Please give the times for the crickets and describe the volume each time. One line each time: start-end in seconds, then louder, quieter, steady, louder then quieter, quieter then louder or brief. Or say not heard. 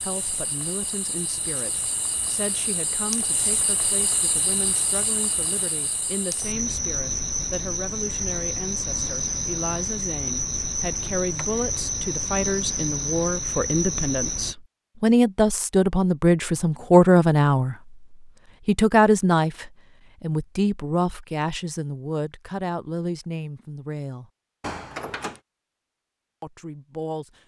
0.0-14.6 louder.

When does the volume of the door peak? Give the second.
25 s.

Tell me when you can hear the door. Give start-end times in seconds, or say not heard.
10.8-11.6, 24.6-25.4.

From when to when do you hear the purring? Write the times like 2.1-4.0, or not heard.
not heard.